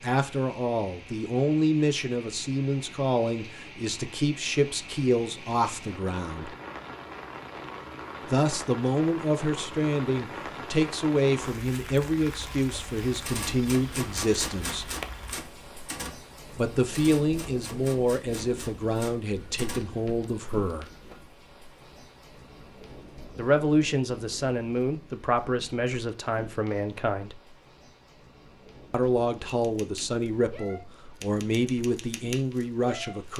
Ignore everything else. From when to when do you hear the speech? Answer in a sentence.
You can hear the speech from 0.0 to 6.5 s, from 8.2 to 14.9 s, from 16.5 to 20.9 s, from 23.4 to 27.4 s and from 28.9 to 33.3 s.